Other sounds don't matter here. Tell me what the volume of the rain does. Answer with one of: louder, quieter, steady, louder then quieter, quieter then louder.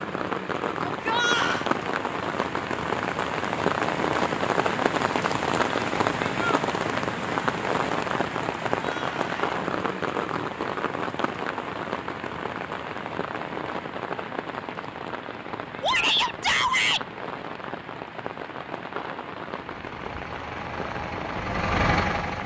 quieter.